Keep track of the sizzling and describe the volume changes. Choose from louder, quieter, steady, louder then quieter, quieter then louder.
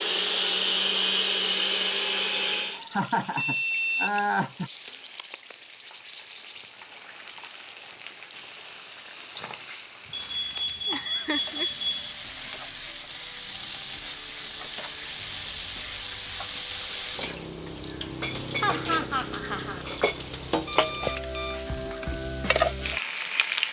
louder.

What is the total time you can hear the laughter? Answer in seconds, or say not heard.
5 s.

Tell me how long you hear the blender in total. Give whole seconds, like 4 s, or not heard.
3 s.